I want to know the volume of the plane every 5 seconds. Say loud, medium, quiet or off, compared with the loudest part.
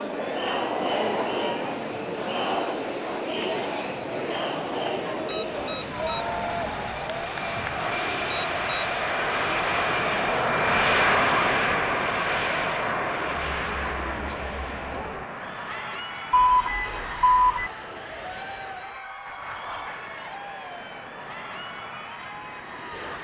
quiet, medium, loud, quiet, quiet.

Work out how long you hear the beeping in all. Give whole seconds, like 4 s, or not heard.
3 s.